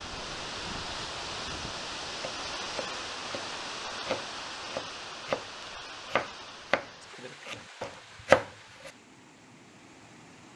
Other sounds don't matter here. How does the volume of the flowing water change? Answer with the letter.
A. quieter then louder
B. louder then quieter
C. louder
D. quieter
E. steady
D.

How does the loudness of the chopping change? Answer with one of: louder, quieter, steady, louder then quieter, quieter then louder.
louder.